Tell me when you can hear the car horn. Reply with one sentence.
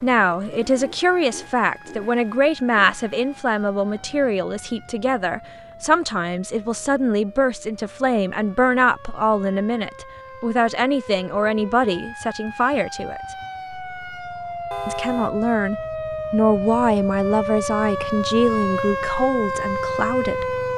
The car horn can be heard from 14.7 to 15.3 s.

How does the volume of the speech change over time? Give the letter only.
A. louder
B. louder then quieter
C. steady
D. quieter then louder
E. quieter
C.